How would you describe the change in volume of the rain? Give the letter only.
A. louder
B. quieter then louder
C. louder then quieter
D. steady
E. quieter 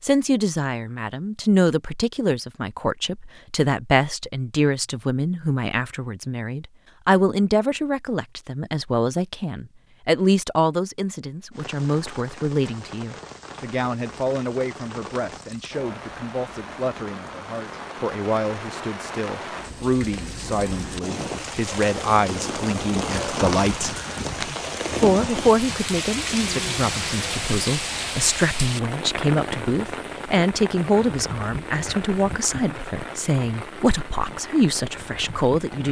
C.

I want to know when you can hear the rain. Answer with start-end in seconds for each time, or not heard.
11.5-35.8.